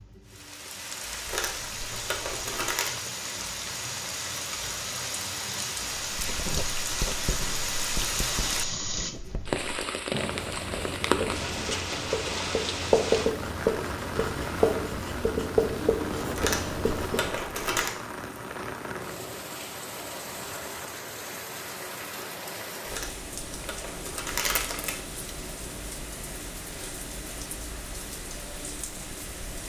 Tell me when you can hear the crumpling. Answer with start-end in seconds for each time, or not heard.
1.2-3.0, 16.4-17.9, 22.9-25.0.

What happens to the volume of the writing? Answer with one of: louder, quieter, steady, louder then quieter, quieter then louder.
louder.